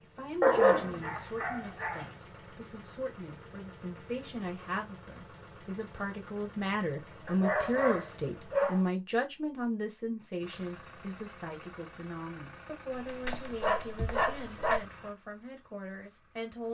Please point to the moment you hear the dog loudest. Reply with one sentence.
The volume of the dog peaks at 1 second.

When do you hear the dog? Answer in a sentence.
You can hear the dog from 0.4 to 2.0 s, from 7.2 to 8.8 s and from 12.9 to 14.8 s.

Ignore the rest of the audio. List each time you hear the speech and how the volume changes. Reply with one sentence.
The speech can be heard from 0.0 to 16.6 s, getting louder then quieter.